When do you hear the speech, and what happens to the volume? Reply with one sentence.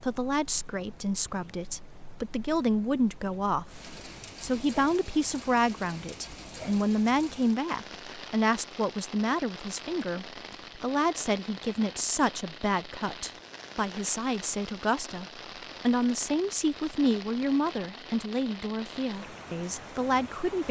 The speech can be heard from 0.0 to 20.6 s, at a steady volume.